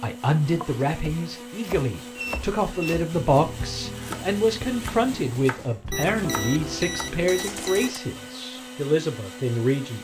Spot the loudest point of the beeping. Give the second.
6 s.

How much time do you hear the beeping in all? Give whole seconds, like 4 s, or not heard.
3 s.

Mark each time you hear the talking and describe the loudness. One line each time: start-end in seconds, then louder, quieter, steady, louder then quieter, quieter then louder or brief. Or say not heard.
0.0-9.9 steady.